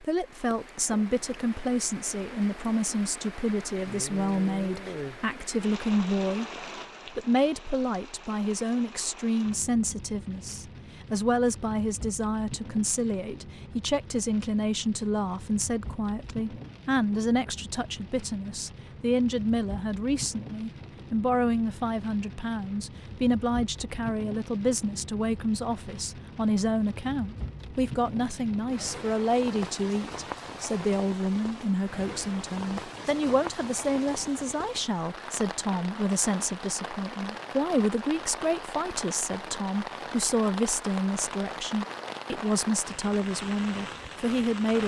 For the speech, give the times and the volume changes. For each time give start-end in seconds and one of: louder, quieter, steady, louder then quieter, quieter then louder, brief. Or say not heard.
0.0-44.8 steady.